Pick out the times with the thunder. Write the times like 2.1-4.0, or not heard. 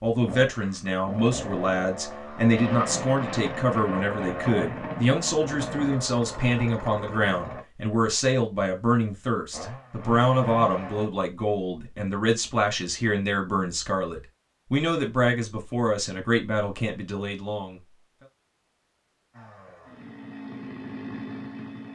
2.5-6.0.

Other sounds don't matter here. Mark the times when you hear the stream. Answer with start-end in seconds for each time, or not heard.
not heard.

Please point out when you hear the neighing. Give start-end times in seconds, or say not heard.
not heard.